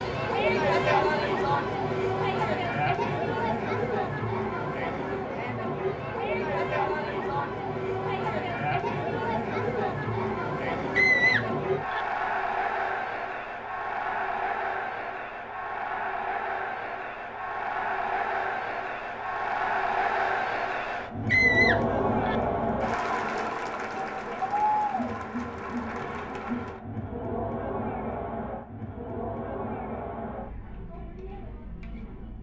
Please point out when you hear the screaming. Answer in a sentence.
The screaming can be heard from 10.9 to 12.1 s and from 21.3 to 22.4 s.